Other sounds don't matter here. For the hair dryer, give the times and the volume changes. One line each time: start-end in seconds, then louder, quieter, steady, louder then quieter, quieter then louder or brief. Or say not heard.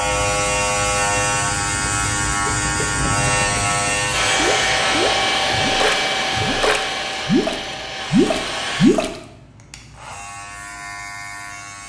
4.1-8.9 quieter.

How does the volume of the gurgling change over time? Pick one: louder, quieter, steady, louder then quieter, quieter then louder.
louder.